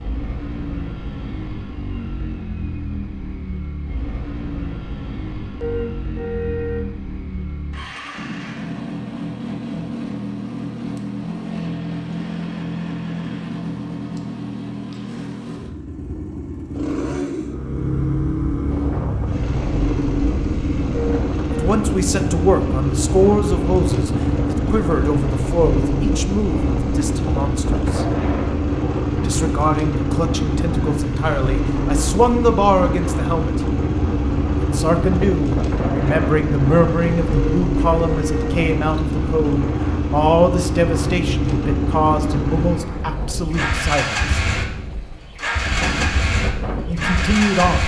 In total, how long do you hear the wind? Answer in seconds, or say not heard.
29 s.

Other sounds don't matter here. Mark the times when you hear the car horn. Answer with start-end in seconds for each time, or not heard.
5.6-6.9, 20.9-21.7, 37.3-38.6.